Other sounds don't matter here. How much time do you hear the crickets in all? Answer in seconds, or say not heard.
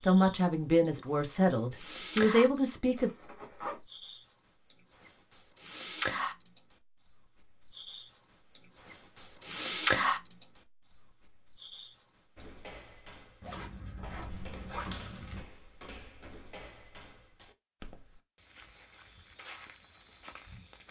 13 s.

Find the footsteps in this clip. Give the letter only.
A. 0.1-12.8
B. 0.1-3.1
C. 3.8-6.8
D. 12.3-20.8
D.